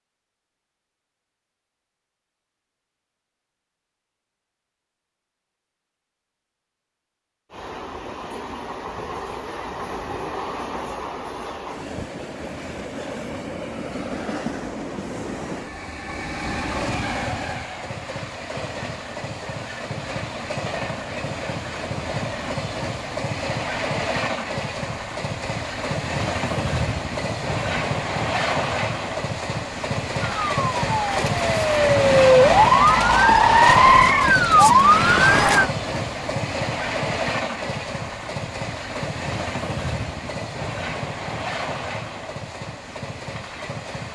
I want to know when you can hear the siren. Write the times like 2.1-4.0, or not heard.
30.1-35.7.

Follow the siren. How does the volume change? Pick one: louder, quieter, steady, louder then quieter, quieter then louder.
louder.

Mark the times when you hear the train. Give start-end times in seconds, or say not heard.
7.5-44.1.